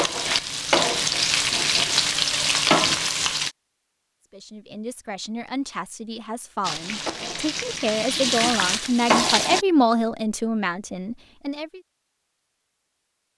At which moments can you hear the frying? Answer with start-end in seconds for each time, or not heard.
0.0-3.5, 6.6-9.7.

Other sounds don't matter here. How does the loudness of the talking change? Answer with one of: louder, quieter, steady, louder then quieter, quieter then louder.
louder then quieter.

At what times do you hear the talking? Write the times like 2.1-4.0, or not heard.
4.3-11.8.